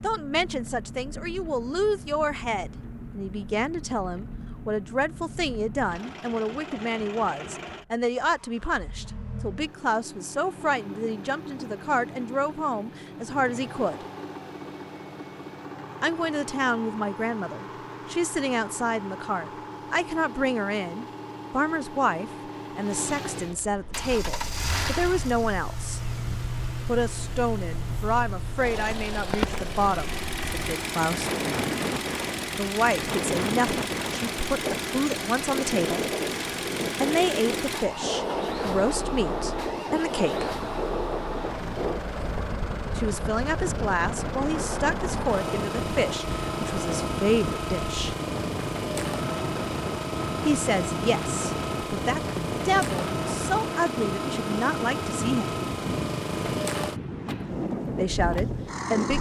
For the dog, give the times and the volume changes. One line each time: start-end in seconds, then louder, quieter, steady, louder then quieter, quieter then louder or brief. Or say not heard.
not heard.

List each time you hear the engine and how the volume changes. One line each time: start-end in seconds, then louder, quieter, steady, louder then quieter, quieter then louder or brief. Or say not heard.
0.0-59.1 louder.